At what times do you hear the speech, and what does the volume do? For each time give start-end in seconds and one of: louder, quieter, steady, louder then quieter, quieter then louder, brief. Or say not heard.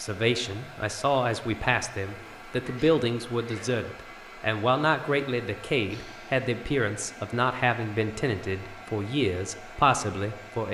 0.0-10.6 steady.